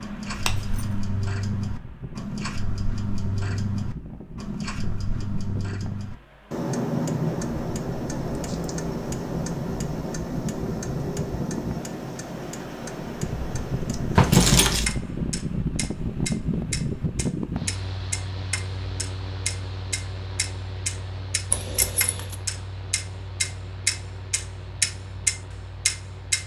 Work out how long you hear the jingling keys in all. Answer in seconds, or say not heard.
2 s.